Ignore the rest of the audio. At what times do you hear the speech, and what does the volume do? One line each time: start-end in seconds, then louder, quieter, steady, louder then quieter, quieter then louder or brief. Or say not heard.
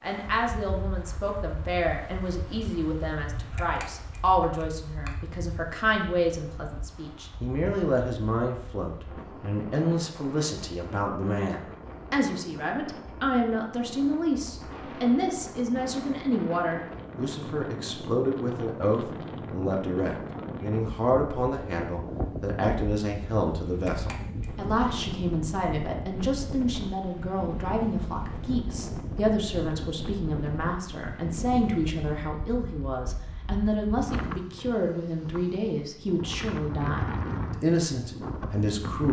0.0-39.0 steady.